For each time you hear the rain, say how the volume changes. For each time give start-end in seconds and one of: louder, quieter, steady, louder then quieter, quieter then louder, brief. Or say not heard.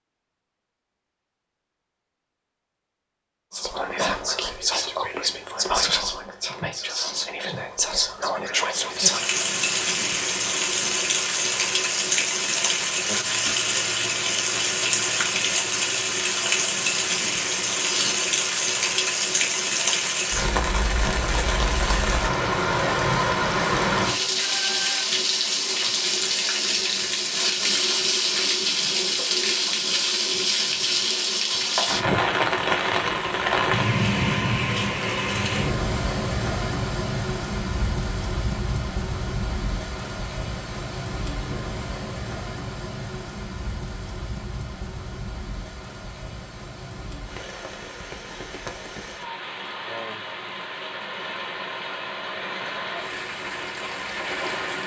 8.8-54.8 quieter.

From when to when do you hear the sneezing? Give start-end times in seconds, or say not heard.
17.8-18.2.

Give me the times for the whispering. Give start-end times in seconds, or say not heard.
3.5-9.2.